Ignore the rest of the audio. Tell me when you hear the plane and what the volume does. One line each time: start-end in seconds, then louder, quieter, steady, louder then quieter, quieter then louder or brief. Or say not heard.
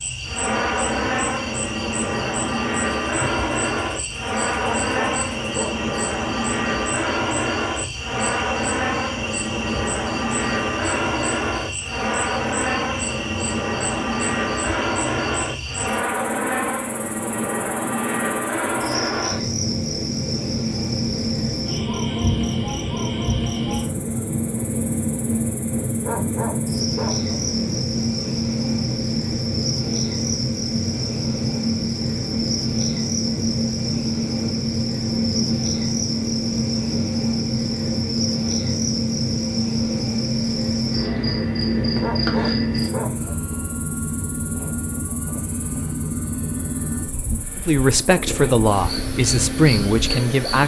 0.0-50.6 steady.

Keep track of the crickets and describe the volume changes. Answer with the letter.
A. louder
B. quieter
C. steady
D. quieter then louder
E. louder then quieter
C.